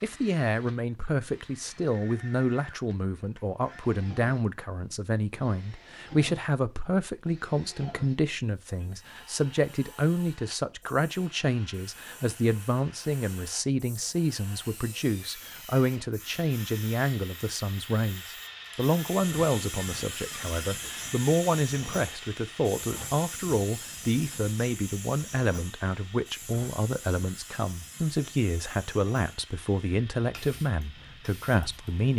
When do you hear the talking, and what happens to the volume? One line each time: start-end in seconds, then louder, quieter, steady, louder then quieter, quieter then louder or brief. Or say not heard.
0.0-32.1 steady.